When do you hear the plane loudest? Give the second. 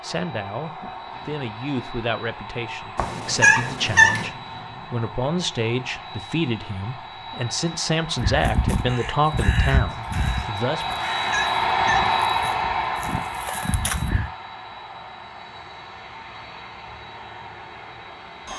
12 s.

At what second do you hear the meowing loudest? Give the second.
4 s.